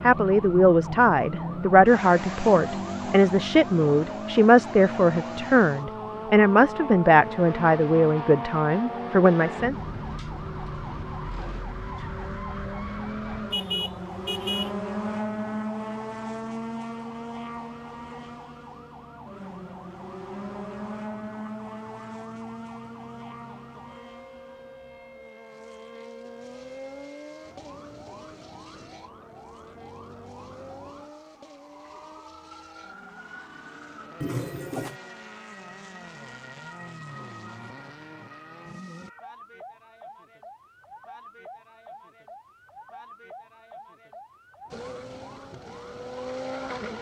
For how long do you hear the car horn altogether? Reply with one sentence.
The car horn can be heard for 2 seconds in total.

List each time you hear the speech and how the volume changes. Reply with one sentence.
You can hear the speech from 0.0 to 9.8 s, at a steady volume.